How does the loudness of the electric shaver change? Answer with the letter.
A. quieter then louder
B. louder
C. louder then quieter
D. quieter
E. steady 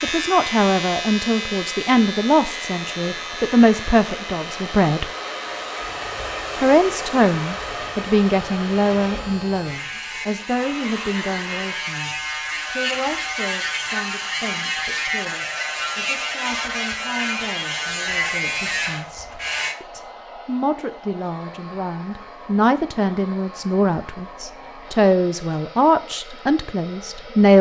A.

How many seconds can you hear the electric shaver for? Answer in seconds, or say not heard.
20 s.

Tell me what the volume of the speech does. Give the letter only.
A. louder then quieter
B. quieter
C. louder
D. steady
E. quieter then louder
E.